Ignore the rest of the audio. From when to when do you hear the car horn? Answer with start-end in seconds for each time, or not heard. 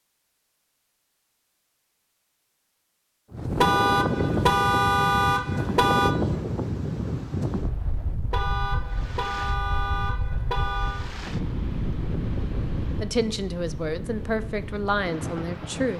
3.5-6.2, 8.3-11.1.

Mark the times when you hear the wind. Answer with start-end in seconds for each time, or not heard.
3.3-15.9.